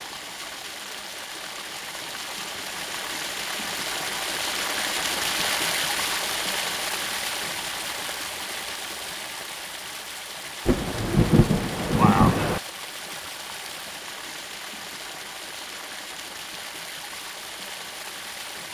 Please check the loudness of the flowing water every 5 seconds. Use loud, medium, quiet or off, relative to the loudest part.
loud, loud, medium, medium.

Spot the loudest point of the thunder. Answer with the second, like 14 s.
12 s.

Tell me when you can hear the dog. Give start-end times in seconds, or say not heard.
not heard.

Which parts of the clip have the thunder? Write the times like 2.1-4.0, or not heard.
10.7-12.6.